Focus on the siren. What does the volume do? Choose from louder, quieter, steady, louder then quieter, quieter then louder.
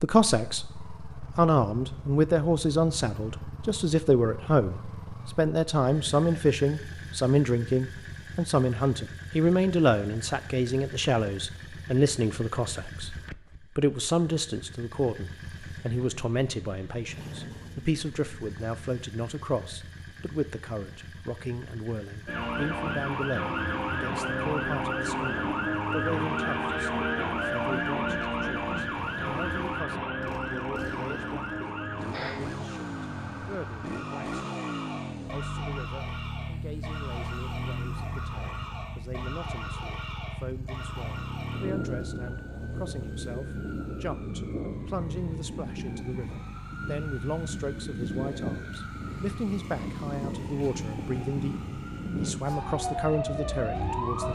quieter then louder.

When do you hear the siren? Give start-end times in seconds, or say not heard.
22.2-54.2.